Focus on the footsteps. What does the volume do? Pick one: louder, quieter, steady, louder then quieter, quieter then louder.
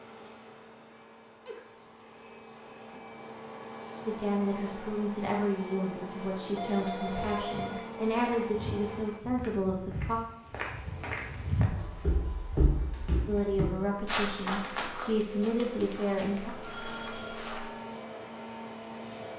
louder then quieter.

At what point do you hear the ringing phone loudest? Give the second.
7 s.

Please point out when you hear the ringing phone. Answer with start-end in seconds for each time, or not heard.
1.4-3.2, 6.5-8.0, 16.6-17.4.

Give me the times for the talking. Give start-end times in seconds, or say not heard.
4.0-10.2, 13.2-16.5.